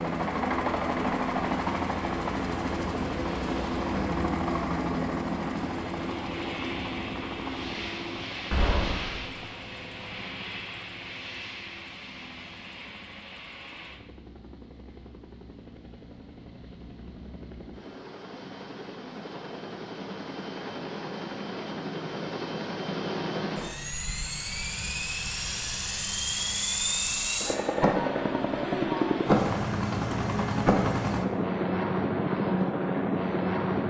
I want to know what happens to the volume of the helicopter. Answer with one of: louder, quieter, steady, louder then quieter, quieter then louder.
quieter then louder.